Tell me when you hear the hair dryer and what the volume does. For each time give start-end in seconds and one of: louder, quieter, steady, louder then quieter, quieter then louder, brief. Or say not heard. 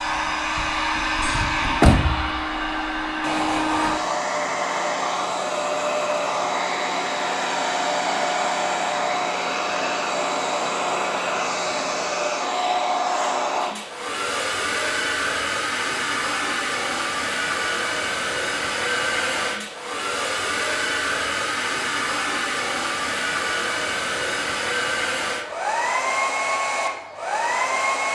0.0-28.1 steady.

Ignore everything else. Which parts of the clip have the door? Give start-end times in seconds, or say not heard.
1.2-2.4.